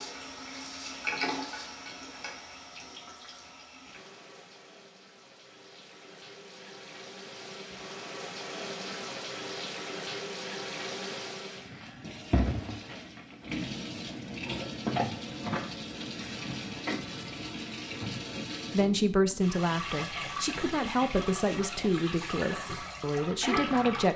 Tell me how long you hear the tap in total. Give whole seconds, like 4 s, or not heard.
24 s.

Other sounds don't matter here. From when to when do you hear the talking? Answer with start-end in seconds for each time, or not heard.
18.7-24.1.